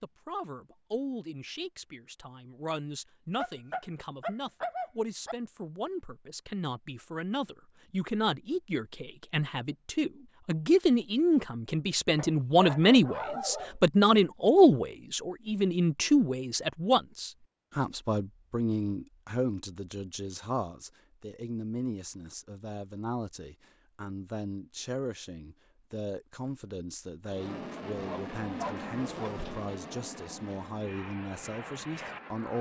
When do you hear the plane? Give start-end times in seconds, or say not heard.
27.2-32.5.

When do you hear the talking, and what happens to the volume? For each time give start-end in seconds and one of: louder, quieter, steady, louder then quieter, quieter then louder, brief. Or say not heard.
0.0-32.5 louder then quieter.